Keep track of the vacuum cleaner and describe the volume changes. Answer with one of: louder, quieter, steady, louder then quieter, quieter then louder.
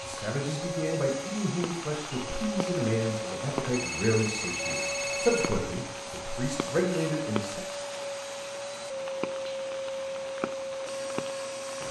steady.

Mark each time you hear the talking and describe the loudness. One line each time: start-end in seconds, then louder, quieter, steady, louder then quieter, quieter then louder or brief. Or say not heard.
0.0-7.6 steady.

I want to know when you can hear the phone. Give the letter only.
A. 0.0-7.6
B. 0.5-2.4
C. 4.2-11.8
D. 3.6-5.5
D.